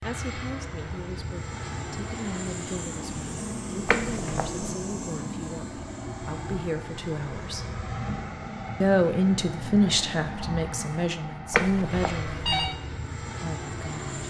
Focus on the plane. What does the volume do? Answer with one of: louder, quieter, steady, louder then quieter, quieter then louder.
steady.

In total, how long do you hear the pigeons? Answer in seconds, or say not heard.
not heard.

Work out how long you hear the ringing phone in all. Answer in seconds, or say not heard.
2 s.